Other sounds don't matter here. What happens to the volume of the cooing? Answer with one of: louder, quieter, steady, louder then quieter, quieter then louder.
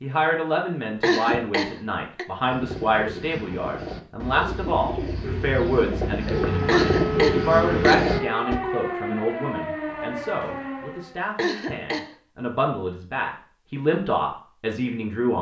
louder.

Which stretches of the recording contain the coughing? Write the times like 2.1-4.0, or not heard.
1.0-2.2, 6.7-8.2, 11.3-12.2.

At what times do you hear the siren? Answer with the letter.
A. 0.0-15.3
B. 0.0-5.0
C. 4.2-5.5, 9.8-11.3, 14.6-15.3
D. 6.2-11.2
D.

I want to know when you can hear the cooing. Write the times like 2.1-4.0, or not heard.
2.5-8.6.